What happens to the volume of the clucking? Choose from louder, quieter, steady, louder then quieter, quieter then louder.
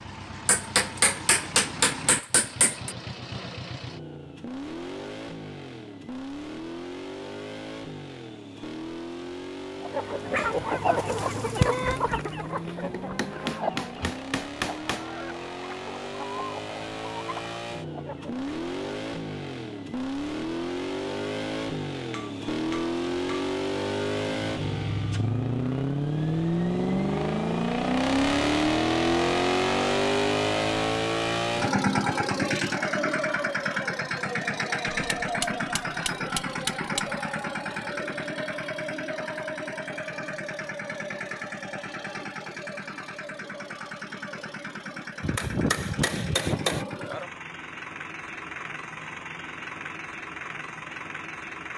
quieter.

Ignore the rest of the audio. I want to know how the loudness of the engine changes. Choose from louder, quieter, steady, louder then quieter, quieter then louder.
louder then quieter.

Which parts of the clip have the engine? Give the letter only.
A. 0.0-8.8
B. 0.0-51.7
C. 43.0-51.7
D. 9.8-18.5
B.